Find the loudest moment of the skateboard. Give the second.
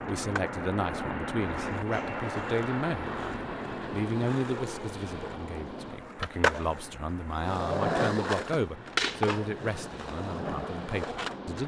8 s.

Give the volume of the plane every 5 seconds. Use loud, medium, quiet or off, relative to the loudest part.
loud, medium, medium.